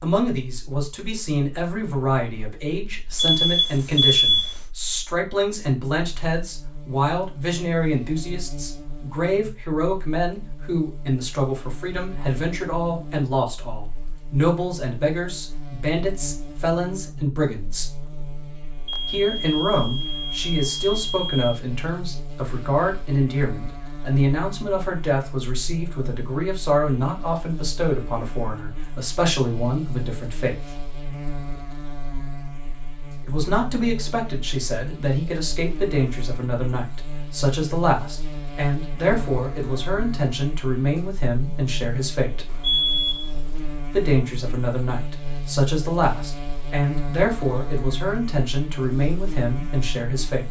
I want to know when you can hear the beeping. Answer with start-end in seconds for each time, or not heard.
3.1-4.6, 18.9-21.6, 42.5-43.6.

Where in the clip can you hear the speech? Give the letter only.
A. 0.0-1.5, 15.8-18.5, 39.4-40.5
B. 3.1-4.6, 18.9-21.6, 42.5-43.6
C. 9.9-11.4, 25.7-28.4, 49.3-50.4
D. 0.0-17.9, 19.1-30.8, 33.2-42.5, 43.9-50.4
D.